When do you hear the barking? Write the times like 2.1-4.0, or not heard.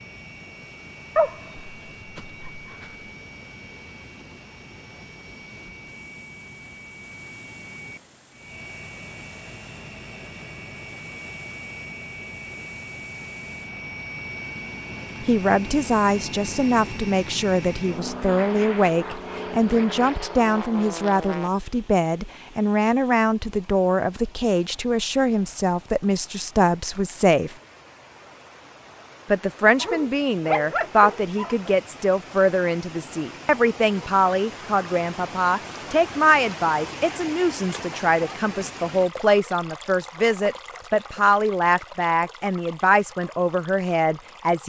1.1-2.9, 29.8-31.8.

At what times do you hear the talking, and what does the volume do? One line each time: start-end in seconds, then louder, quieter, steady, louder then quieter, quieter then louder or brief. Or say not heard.
15.2-27.6 steady
29.2-44.6 steady.